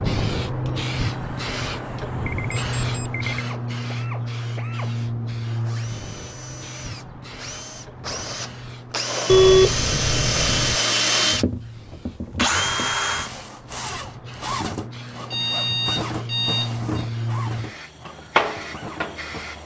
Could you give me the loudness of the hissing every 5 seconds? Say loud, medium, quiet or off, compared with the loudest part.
loud, medium, quiet, loud.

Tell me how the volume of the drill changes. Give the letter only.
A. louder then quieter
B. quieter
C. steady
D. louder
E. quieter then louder
A.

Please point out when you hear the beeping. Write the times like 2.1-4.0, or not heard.
2.2-3.4, 9.2-10.8, 15.3-17.1.